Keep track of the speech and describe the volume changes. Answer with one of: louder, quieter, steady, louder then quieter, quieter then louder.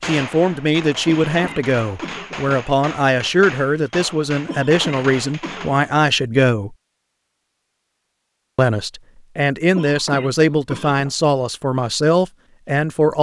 steady.